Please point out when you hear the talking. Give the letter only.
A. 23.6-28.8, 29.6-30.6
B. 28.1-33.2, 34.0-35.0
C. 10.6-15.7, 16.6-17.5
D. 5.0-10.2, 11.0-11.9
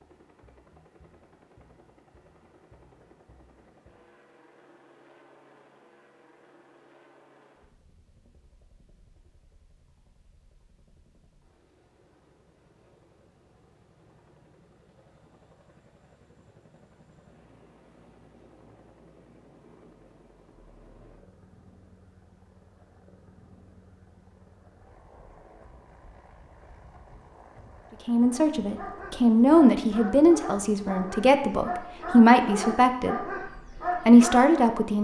B.